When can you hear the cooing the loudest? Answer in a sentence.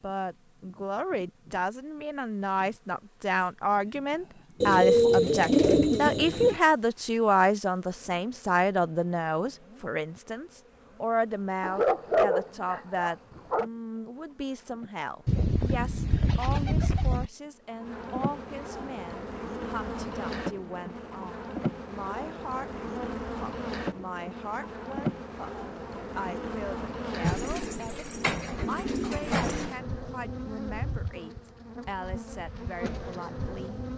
The volume of the cooing peaks at 5 seconds.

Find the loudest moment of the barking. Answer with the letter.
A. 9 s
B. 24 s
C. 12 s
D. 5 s
C.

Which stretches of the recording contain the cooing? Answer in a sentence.
You can hear the cooing from 4.6 to 6.6 s, from 15.2 to 17.3 s and from 27.2 to 29.8 s.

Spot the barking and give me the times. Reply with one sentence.
The barking can be heard from 11.6 to 13.7 s.